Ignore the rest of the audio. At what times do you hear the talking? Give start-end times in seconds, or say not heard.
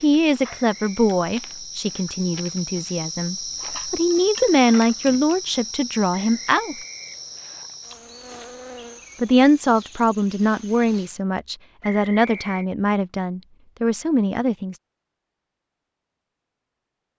0.0-6.8, 9.2-14.8.